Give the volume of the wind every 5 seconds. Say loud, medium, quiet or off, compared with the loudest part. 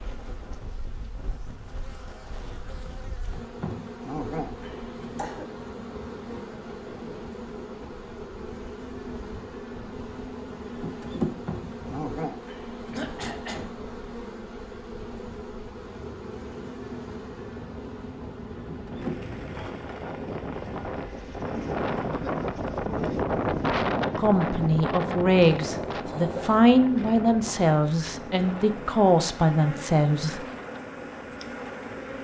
quiet, quiet, quiet, quiet, loud, medium, quiet.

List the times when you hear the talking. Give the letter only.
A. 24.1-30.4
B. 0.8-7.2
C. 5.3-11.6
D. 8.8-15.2
A.